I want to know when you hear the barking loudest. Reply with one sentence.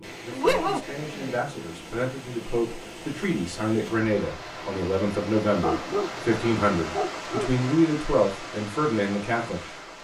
The volume of the barking peaks at 1 second.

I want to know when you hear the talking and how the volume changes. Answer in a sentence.
The talking can be heard from 0.0 to 10.0 s, getting louder.